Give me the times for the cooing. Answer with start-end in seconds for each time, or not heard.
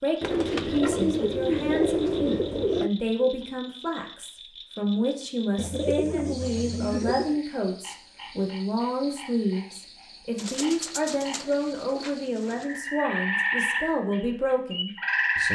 0.2-2.9, 5.5-7.4, 10.3-12.7.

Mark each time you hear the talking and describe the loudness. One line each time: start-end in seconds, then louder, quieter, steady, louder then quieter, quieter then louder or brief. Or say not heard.
0.0-15.4 steady.